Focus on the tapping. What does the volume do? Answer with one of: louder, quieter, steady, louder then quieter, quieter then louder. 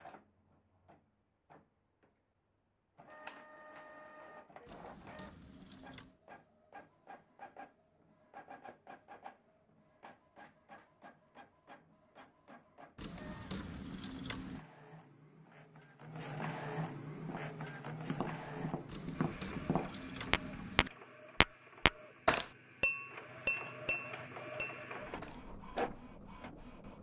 louder then quieter.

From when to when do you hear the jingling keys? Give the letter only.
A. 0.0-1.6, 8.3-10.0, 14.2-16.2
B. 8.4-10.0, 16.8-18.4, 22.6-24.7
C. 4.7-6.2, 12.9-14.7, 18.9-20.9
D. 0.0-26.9
C.